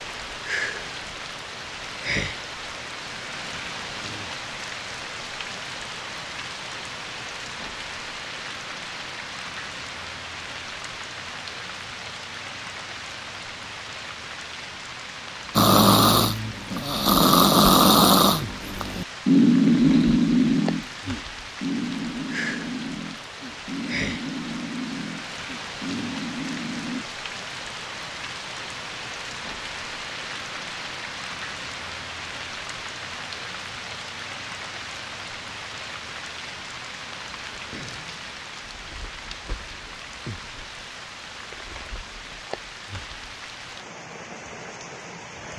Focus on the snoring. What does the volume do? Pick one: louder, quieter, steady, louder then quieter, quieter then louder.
quieter.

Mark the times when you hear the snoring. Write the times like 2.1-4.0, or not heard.
15.6-27.1.